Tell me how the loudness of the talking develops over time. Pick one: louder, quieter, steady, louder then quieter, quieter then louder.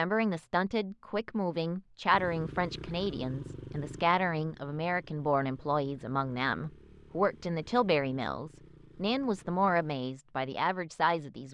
steady.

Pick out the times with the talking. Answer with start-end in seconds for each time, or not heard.
0.0-11.5.